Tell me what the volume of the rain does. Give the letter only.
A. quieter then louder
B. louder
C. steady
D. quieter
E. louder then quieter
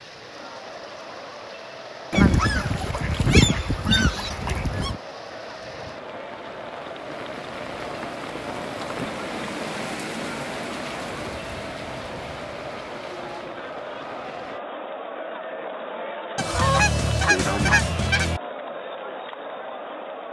E.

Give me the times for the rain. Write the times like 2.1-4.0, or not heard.
0.0-14.6.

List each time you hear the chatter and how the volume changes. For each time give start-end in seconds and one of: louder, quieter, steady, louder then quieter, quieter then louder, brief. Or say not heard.
0.0-20.2 louder.